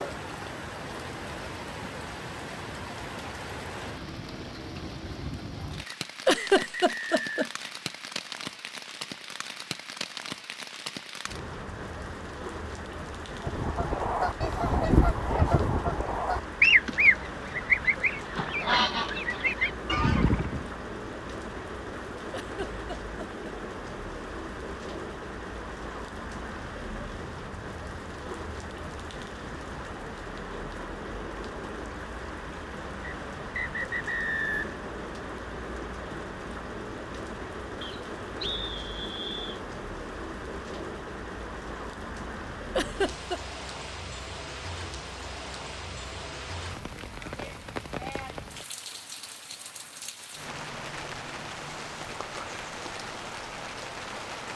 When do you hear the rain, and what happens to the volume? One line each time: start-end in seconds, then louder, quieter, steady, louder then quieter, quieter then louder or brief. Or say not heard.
0.0-54.5 steady.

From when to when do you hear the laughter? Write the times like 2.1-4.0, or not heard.
6.2-7.5, 22.3-23.4, 42.8-43.4.